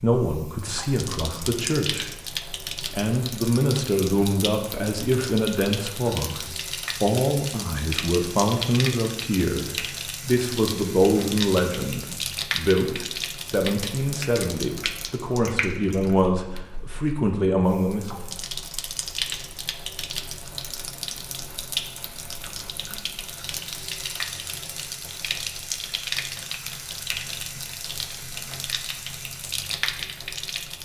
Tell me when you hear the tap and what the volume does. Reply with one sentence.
The tap can be heard from 0.0 to 30.8 s, at a steady volume.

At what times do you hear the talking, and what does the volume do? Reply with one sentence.
You can hear the talking from 0.0 to 18.2 s, at a steady volume.